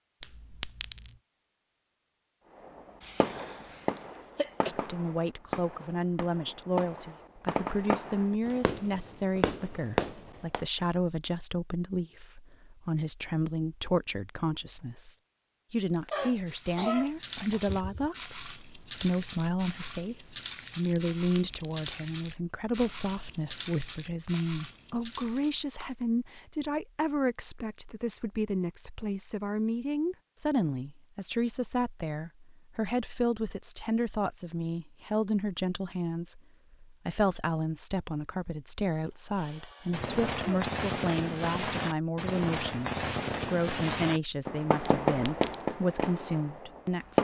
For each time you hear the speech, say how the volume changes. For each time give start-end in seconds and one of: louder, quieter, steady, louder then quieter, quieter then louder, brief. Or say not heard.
4.7-47.1 steady.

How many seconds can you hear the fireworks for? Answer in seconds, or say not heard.
15 s.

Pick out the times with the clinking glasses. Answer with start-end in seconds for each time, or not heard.
0.2-1.1, 20.9-21.8, 44.9-45.6.